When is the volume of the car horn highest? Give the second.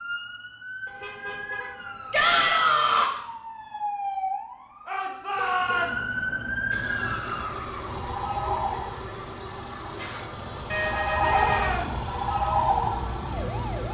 11 s.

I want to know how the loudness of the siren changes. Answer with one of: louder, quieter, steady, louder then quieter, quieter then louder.
louder.